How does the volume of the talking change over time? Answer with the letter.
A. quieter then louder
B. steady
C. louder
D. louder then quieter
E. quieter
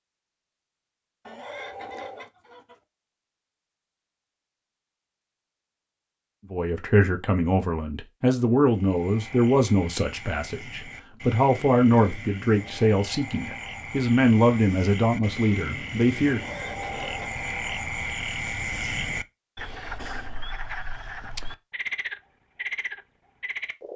B.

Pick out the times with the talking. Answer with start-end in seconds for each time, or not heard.
6.5-16.4.